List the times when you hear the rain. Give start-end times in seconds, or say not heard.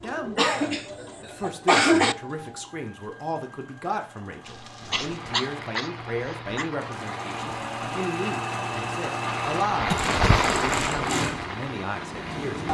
4.4-12.6.